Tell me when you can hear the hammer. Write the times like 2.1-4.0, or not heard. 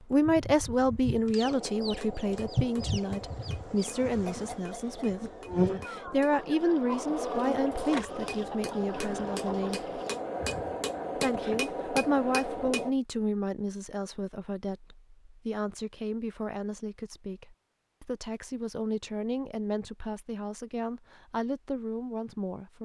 1.4-12.9.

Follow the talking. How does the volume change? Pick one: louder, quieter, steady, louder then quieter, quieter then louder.
quieter.